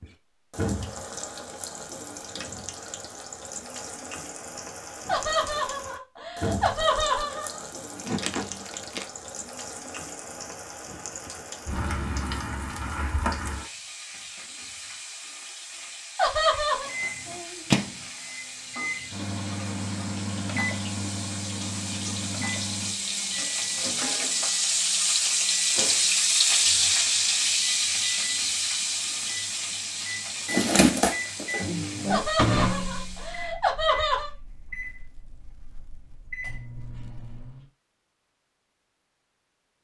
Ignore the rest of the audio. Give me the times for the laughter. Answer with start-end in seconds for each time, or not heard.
5.0-7.6, 16.1-16.9, 32.1-34.3.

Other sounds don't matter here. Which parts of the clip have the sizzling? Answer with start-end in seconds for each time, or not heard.
0.0-33.5.